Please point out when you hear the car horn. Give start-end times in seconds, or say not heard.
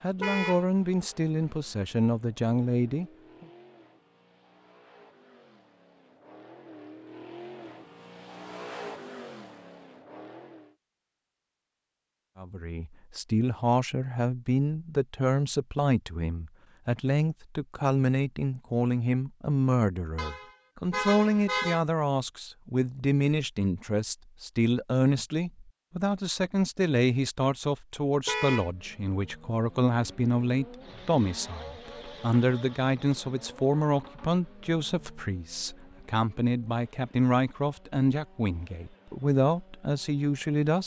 0.2-0.7, 20.1-21.9, 28.2-28.7.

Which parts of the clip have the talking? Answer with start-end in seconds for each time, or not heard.
0.0-3.5, 12.3-40.8.